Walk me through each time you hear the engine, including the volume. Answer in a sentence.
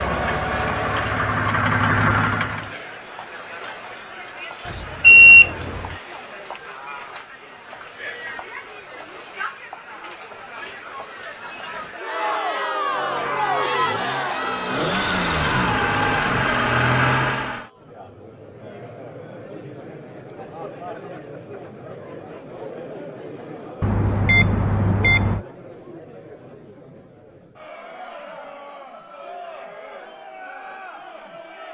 You can hear the engine briefly from 0.0 to 2.8 s; and from 12.8 to 17.6 s, getting louder.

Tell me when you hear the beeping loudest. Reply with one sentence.
The loudest moment of the beeping is at 5 seconds.